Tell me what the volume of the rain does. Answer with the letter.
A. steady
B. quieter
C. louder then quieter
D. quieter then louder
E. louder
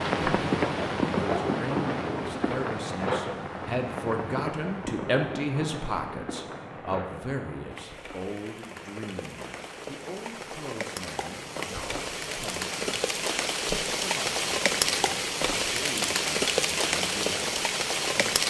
D.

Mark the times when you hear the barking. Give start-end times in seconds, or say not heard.
not heard.